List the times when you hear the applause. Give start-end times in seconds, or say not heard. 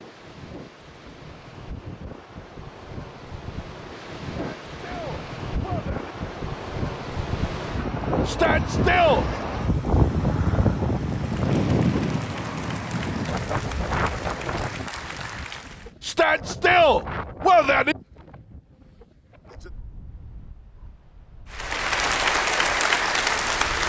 11.1-15.9, 21.5-23.8.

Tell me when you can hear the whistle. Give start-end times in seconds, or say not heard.
not heard.